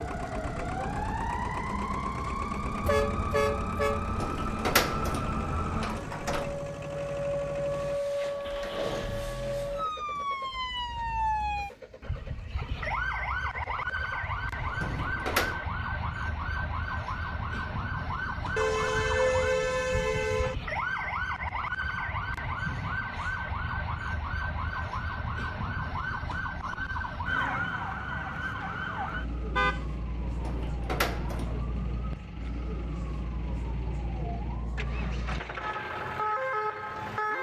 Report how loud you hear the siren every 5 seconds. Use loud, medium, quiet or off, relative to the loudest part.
loud, loud, loud, loud, loud, loud, medium, loud.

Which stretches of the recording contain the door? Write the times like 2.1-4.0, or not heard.
4.0-6.6, 14.6-15.6, 30.2-31.6.